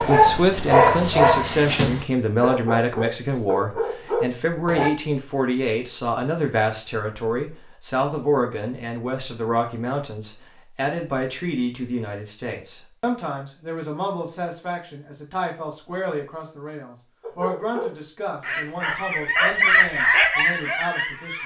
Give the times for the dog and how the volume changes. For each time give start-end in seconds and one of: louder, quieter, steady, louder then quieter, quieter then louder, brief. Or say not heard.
0.0-4.9 quieter
17.2-21.4 louder then quieter.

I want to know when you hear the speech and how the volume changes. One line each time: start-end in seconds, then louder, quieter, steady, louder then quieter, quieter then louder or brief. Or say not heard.
0.0-21.4 quieter.